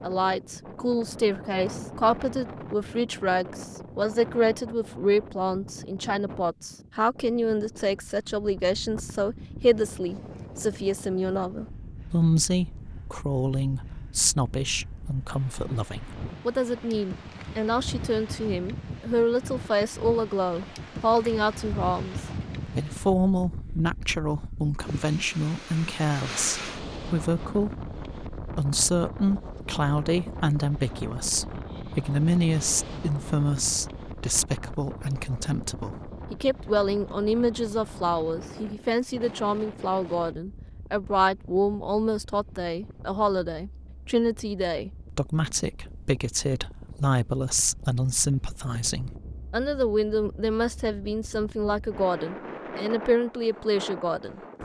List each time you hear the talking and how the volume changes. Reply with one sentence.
You can hear the talking from 0.0 to 54.4 s, at a steady volume.